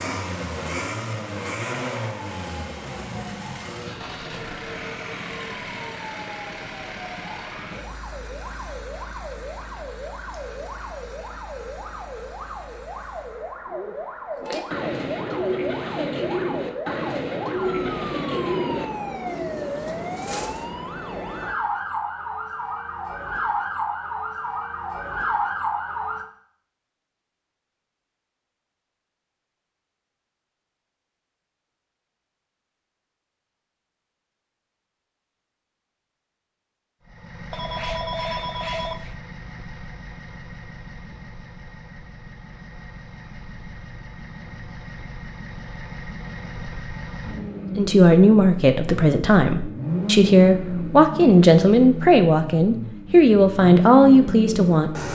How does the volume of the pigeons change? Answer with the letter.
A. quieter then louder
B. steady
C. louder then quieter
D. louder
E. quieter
E.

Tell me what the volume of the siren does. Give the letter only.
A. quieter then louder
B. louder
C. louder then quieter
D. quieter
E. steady
B.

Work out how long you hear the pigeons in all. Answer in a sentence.
The pigeons can be heard for 6 seconds in total.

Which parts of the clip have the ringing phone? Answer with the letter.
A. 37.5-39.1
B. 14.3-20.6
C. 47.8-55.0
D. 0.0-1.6
A.